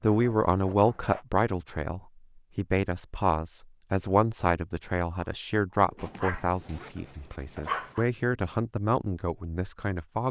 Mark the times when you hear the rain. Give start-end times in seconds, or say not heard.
not heard.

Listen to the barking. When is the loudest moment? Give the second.
8 s.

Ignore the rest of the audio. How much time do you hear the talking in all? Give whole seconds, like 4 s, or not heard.
10 s.